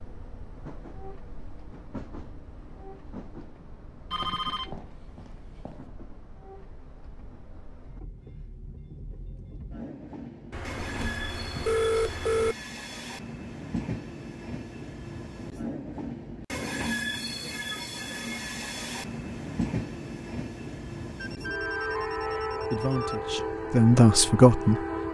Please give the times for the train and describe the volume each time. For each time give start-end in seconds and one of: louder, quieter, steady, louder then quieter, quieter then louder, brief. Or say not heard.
0.0-25.0 louder.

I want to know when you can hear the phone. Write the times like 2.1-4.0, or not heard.
4.1-5.8, 10.5-12.6, 21.1-23.2.